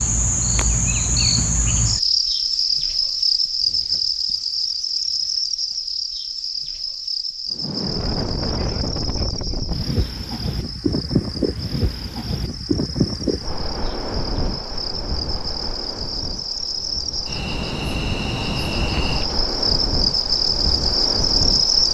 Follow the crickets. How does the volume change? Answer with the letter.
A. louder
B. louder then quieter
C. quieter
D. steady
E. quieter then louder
E.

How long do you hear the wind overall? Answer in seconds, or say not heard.
14 s.